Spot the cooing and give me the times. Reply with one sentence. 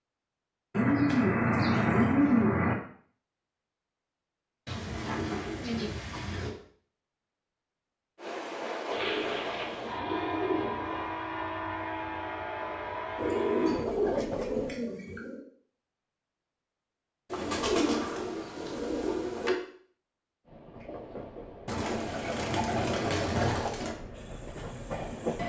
The cooing can be heard from 0.7 to 2.8 s, from 4.7 to 6.5 s, from 8.9 to 11.1 s, from 13.2 to 15.4 s, from 17.3 to 19.6 s and from 21.6 to 23.9 s.